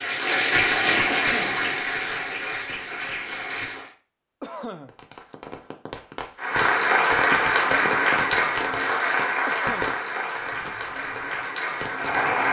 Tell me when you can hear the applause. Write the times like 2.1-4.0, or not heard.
0.0-3.9, 6.3-12.4.